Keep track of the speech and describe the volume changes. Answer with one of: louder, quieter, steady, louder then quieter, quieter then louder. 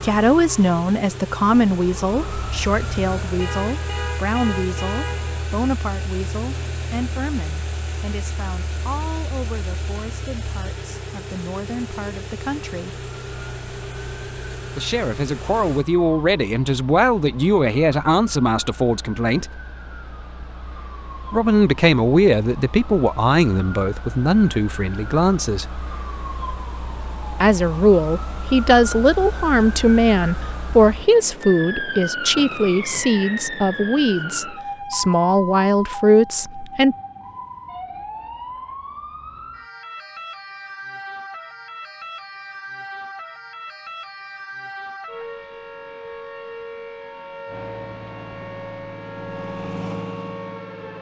quieter then louder.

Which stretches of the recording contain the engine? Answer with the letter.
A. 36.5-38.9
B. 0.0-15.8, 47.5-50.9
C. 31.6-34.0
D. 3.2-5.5
B.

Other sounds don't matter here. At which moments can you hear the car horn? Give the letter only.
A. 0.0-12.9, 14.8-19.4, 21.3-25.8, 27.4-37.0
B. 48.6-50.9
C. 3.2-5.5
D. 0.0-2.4
C.